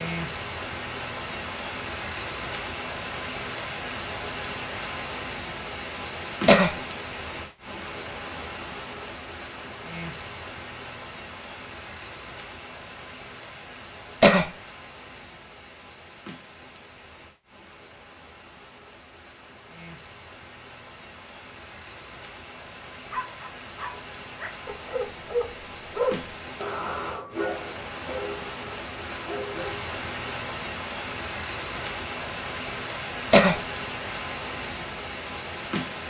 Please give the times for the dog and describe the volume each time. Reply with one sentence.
The dog can be heard from 23.1 to 29.8 s, getting louder then quieter.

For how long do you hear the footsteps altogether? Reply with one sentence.
You can't hear the footsteps here.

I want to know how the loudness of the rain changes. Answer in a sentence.
The volume of the rain goes down, then up.